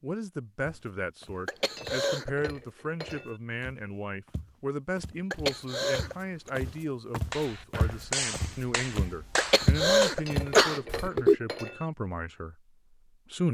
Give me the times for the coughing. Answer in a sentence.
The coughing can be heard from 1.4 to 2.3 s, from 5.3 to 6.5 s and from 9.3 to 11.3 s.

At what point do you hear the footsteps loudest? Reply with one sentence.
The loudest moment of the footsteps is at 10 seconds.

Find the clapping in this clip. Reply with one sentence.
You can hear the clapping from 7.3 to 10.2 s.